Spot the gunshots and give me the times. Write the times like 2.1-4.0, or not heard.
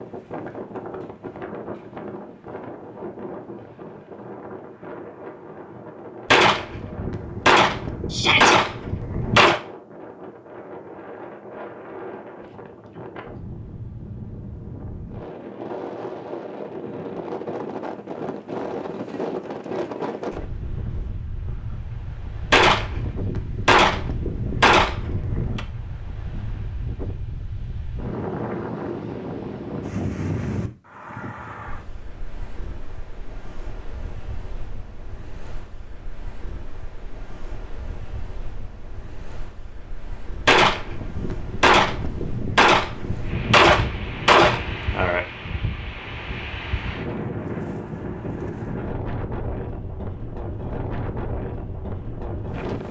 6.3-9.6, 22.5-25.6, 40.5-45.2.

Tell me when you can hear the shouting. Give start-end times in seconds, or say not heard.
8.1-8.6.